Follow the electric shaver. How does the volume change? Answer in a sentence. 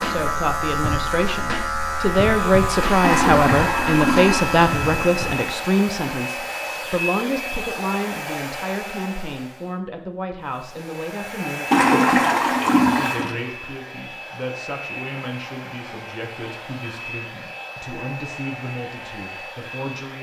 The volume of the electric shaver stays about the same.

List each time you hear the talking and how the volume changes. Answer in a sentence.
The talking can be heard from 0.0 to 20.1 s, getting quieter.